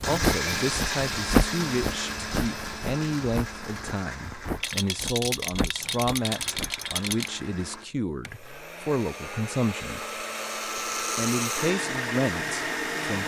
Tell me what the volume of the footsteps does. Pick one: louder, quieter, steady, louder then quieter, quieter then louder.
quieter.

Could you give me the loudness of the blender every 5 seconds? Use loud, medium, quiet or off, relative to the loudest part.
loud, medium, loud.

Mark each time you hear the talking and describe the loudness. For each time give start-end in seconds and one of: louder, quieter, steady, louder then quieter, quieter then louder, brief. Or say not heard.
0.1-10.1 steady
11.2-13.2 brief.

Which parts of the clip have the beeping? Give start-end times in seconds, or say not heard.
not heard.